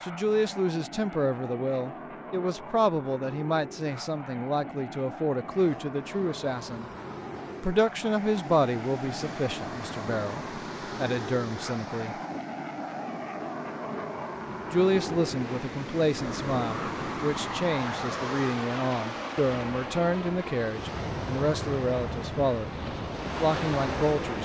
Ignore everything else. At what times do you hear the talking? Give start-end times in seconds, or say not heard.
0.0-6.8, 7.6-12.2, 14.7-24.3.